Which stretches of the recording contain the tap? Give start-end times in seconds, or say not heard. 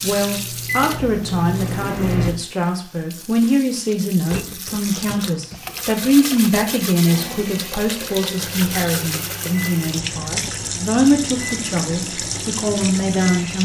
0.0-13.6.